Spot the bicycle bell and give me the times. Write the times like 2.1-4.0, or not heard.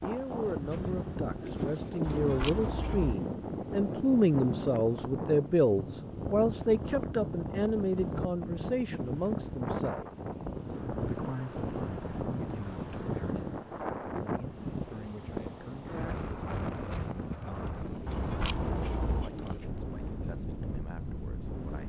2.0-3.1, 18.1-19.3.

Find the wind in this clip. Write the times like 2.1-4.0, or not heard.
0.0-21.8.